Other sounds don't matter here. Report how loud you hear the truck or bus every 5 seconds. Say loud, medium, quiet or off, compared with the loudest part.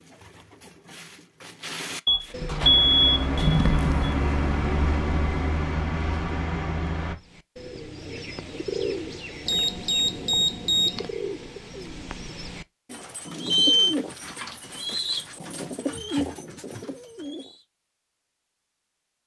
loud, loud, off, off.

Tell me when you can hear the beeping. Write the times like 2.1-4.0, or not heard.
2.0-4.2, 9.4-11.1, 13.1-13.9.